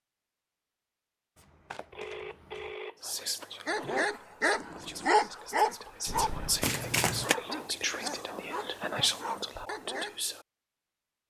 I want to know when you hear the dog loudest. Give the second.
5 s.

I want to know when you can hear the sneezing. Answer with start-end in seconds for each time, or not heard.
not heard.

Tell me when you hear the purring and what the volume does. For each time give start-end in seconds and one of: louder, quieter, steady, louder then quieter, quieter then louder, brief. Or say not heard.
not heard.